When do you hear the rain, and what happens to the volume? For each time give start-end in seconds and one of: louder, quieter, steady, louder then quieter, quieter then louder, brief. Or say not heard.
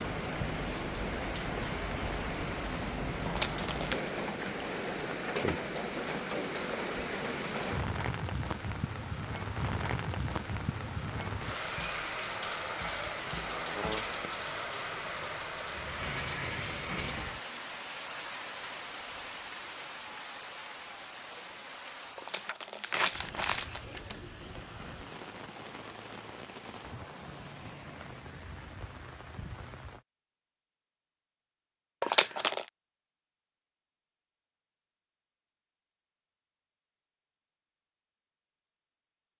0.0-30.1 quieter.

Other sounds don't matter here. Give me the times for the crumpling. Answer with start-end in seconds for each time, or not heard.
3.2-4.0, 22.1-24.1, 32.0-32.6.